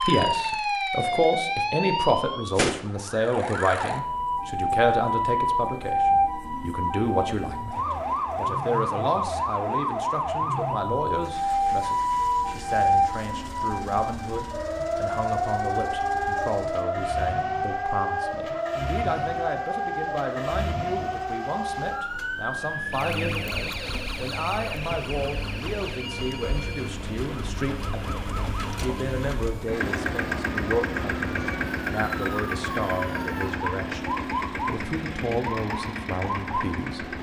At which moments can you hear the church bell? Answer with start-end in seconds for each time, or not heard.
not heard.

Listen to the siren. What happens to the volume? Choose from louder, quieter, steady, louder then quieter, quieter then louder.
quieter.